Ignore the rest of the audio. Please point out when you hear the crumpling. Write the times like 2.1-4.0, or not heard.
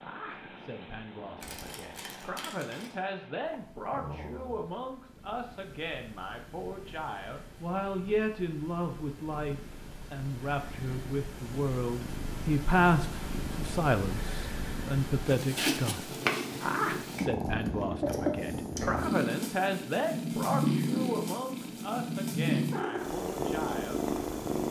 1.4-3.0.